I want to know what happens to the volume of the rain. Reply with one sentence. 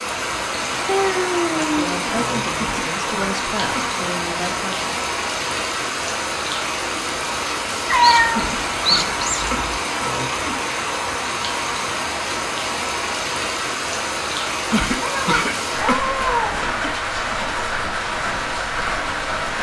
The loudness of the rain stays about the same.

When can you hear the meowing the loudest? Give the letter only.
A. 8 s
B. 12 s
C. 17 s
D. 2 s
A.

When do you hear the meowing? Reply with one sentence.
You can hear the meowing from 0.8 to 2.1 s, from 7.8 to 9.6 s and from 15.0 to 17.0 s.